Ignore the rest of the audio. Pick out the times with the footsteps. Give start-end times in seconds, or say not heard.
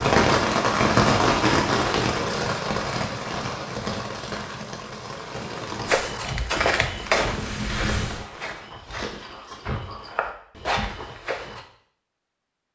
5.8-11.7.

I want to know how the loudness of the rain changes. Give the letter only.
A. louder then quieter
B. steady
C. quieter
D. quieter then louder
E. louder
C.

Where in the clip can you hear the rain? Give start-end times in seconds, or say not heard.
0.0-8.2.